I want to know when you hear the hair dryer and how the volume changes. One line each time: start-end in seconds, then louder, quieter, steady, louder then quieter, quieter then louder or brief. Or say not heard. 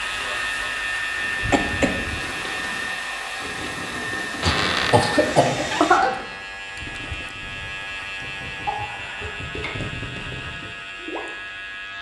0.0-6.0 steady.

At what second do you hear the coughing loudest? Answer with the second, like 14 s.
6 s.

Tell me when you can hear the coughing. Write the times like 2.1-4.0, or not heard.
1.4-2.2, 4.4-6.2, 8.7-9.7.